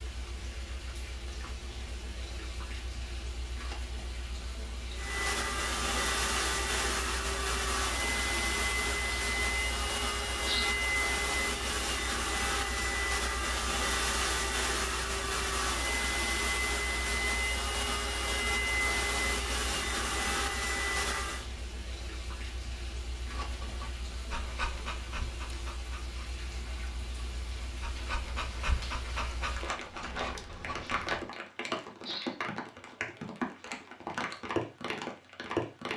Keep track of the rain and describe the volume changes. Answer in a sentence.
The volume of the rain goes up.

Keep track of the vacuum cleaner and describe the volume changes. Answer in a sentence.
The volume of the vacuum cleaner stays about the same.